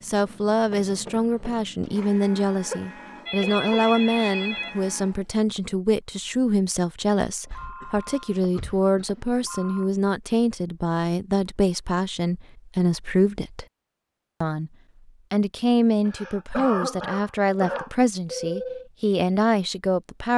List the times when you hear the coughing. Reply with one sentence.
The coughing can be heard from 2.6 to 3.7 s, from 7.5 to 9.5 s and from 16.1 to 17.9 s.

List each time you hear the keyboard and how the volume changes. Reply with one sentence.
You can't hear the keyboard here.